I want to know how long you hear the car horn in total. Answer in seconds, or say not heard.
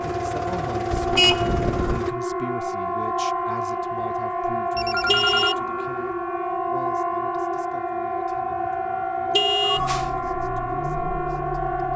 3 s.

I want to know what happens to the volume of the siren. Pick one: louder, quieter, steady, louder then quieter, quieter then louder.
steady.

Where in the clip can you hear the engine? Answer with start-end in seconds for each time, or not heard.
0.0-2.1, 9.7-11.9.